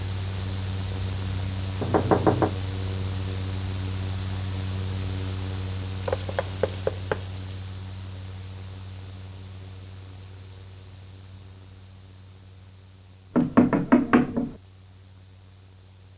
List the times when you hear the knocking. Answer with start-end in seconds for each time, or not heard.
1.8-2.5, 6.1-7.2, 13.3-14.6.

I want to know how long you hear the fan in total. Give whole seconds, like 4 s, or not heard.
16 s.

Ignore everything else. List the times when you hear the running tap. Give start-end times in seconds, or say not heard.
6.0-7.7.